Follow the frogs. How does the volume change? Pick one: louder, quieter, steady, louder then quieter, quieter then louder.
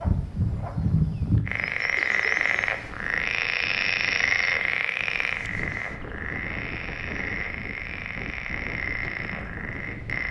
quieter.